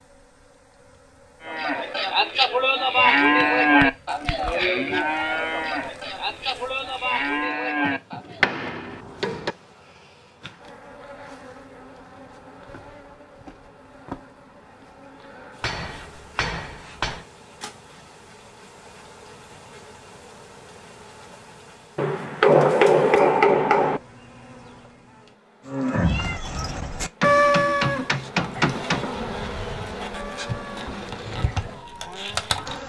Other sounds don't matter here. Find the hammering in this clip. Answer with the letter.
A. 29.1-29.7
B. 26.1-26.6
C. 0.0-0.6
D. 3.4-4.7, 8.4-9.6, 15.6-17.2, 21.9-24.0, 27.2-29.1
D.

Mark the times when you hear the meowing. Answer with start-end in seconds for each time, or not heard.
26.1-26.6.